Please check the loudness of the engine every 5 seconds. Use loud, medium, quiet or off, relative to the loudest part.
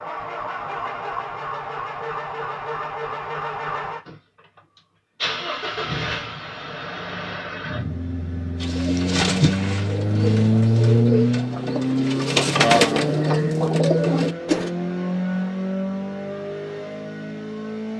medium, medium, loud, medium.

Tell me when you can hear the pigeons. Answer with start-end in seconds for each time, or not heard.
8.6-14.7.